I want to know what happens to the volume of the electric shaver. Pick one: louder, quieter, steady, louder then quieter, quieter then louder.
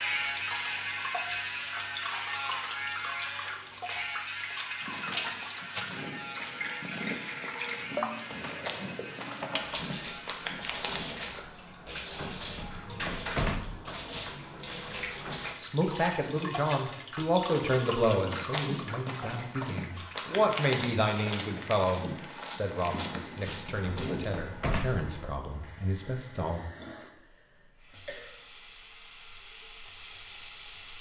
quieter.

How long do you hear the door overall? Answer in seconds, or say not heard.
3 s.